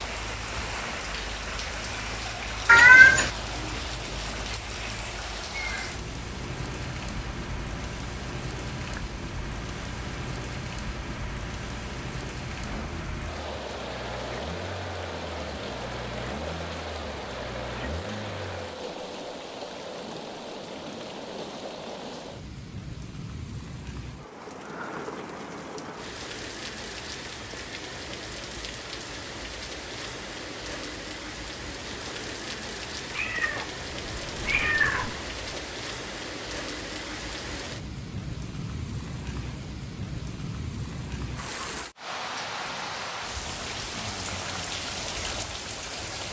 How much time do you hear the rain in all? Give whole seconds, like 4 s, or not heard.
46 s.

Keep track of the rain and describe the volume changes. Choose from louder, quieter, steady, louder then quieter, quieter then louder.
steady.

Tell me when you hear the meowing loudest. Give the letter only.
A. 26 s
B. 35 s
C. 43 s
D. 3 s
D.